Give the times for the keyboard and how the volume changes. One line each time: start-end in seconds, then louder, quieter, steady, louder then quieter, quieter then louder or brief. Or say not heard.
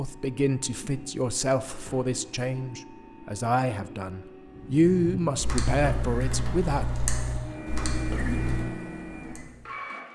4.5-9.7 steady.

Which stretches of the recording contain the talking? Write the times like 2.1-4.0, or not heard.
0.0-6.9.